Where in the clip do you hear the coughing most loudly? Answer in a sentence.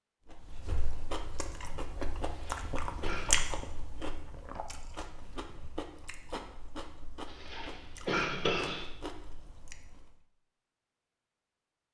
The volume of the coughing peaks at 8 seconds.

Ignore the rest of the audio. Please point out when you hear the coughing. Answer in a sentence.
The coughing can be heard from 2.2 to 3.5 s and from 7.5 to 8.8 s.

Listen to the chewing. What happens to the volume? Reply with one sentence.
The volume of the chewing goes up, then down.